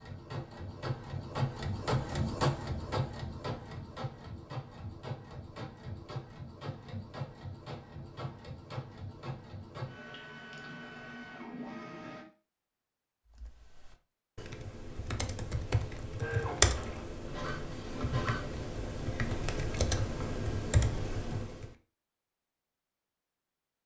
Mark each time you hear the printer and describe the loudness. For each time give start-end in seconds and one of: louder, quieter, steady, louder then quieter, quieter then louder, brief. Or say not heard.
0.0-12.2 quieter
16.2-18.6 brief.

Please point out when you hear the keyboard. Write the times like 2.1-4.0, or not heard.
13.3-21.7.